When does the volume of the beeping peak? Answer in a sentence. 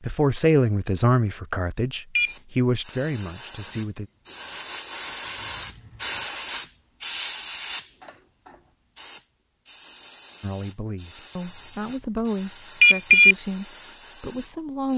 The volume of the beeping peaks at 13 seconds.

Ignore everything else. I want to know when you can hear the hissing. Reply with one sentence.
The hissing can be heard from 2.2 to 14.9 s.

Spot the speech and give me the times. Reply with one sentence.
You can hear the speech from 0.1 to 4.1 s and from 10.4 to 14.9 s.